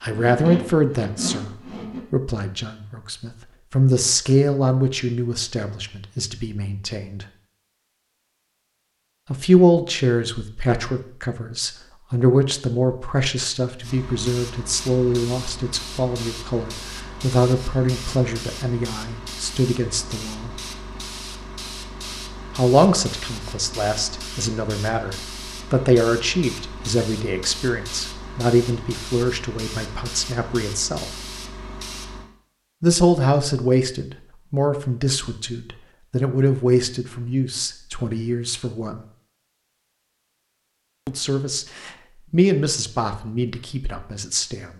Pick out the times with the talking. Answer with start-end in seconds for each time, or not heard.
0.0-7.2, 9.3-20.6, 22.6-31.1, 32.8-39.0, 41.0-44.7.